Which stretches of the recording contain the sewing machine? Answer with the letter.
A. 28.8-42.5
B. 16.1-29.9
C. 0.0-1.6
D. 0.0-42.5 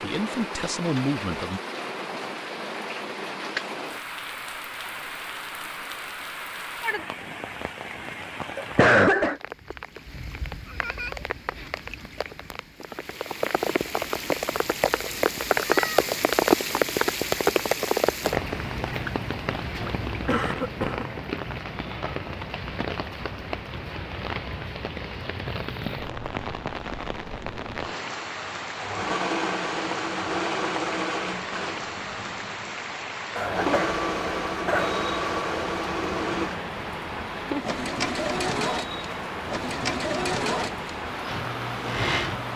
A.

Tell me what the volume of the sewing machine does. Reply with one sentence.
The loudness of the sewing machine stays about the same.